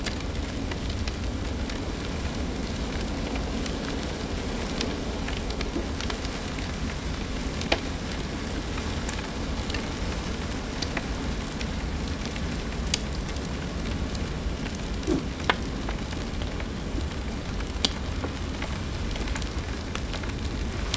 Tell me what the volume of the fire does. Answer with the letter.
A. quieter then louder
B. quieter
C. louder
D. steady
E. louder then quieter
D.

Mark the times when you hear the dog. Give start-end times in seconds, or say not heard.
not heard.